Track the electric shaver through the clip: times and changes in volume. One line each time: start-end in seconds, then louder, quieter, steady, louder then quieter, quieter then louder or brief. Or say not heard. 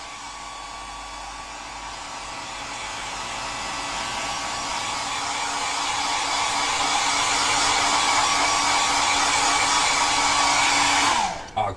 0.0-5.2 louder.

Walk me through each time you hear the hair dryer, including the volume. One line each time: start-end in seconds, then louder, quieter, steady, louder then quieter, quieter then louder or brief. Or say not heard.
0.0-11.7 louder.